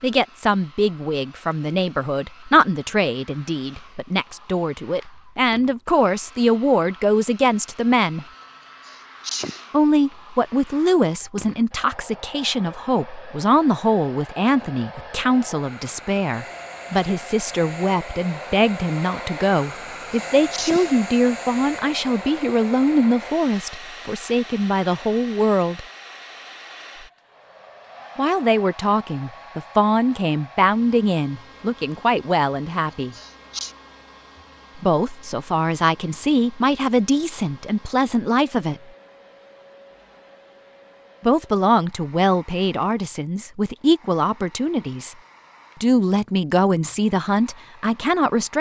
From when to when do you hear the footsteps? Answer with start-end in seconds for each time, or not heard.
not heard.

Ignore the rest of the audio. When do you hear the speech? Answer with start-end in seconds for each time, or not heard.
0.0-8.2, 9.7-25.9, 28.1-33.1, 34.8-38.8, 41.2-45.1, 45.8-48.5.